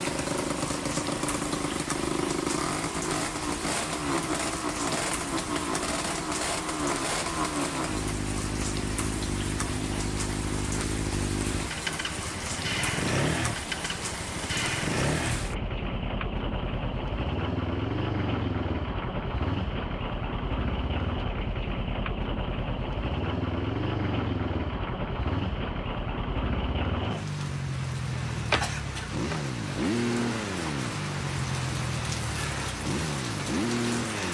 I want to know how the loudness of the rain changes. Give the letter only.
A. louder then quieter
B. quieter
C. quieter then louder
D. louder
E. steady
E.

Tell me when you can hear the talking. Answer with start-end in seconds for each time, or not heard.
not heard.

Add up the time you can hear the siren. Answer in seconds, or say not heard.
not heard.